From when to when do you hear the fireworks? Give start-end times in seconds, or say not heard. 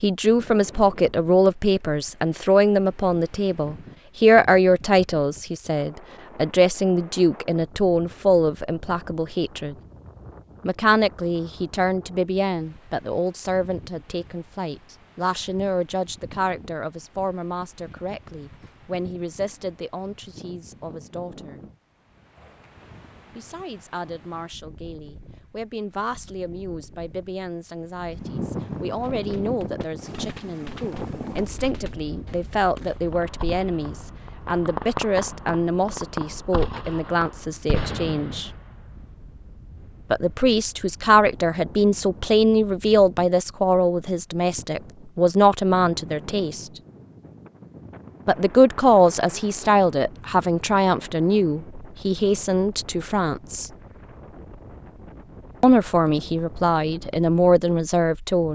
29.0-38.9.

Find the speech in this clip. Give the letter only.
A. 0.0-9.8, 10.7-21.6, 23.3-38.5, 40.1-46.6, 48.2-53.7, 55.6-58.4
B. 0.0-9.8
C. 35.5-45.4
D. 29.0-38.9
A.